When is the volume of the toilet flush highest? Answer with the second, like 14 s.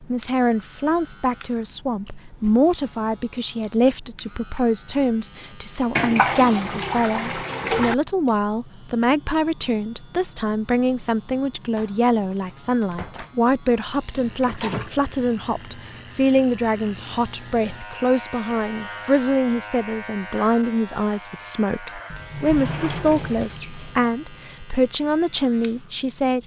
6 s.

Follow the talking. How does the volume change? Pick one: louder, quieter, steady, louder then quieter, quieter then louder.
steady.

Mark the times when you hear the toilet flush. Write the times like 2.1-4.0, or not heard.
6.0-8.0, 14.2-16.0.